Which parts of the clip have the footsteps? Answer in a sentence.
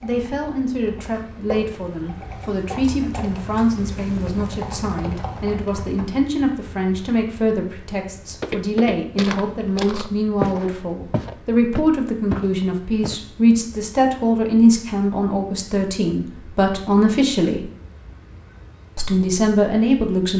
The footsteps can be heard from 8.4 to 13.2 s.